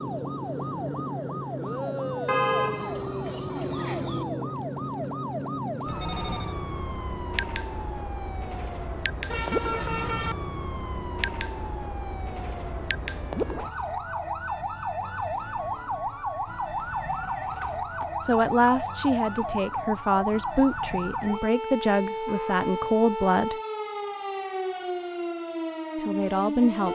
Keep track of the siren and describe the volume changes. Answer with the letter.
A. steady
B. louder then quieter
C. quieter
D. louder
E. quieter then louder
A.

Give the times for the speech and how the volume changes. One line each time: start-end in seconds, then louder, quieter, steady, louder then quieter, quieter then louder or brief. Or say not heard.
18.2-23.6 steady
25.9-26.9 brief.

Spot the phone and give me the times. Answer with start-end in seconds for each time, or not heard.
5.8-6.5, 16.4-18.1.